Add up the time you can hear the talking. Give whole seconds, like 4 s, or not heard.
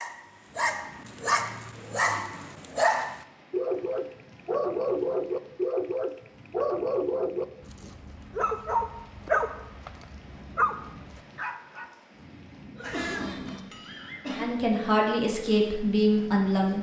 2 s.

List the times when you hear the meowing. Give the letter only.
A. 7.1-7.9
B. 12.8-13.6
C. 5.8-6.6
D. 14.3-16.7
B.